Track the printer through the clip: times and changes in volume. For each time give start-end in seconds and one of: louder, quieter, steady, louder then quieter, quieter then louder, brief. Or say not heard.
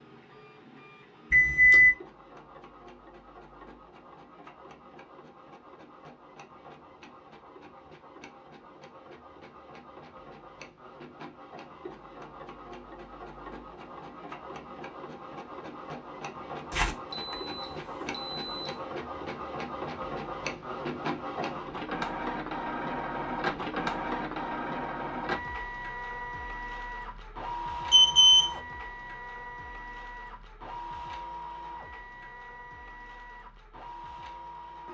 0.0-34.8 louder then quieter.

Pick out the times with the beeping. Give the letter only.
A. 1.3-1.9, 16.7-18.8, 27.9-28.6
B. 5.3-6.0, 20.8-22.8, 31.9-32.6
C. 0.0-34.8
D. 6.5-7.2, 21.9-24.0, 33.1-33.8
A.